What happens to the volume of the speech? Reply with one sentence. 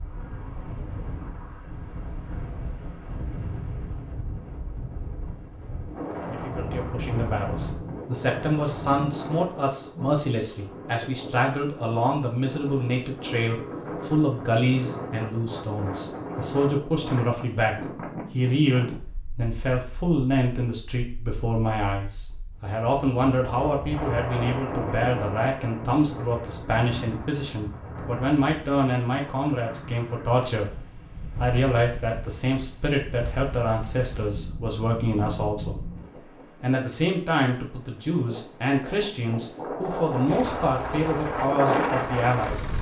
The volume of the speech stays about the same.